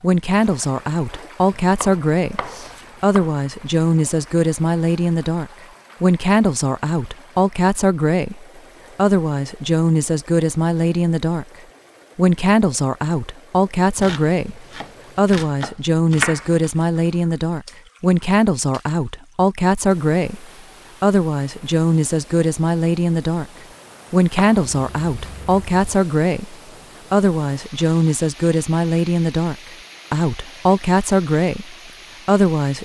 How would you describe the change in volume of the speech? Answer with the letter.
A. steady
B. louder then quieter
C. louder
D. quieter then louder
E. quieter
A.